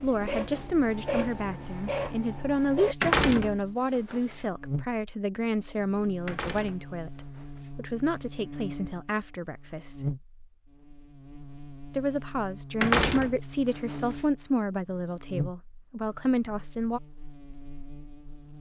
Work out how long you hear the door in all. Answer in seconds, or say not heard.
4 s.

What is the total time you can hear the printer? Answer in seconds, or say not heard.
3 s.